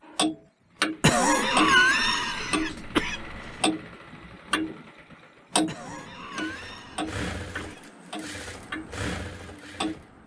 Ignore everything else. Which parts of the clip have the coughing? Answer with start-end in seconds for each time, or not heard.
1.0-3.5, 5.7-7.8.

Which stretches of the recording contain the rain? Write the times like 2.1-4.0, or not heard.
not heard.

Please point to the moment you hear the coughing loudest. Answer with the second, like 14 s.
2 s.